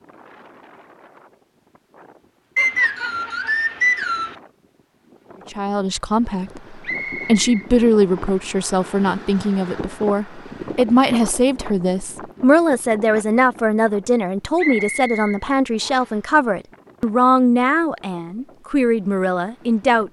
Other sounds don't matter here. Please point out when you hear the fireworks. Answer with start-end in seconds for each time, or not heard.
not heard.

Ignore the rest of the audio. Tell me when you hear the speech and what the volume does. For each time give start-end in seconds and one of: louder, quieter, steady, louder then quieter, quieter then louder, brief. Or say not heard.
5.5-20.0 steady.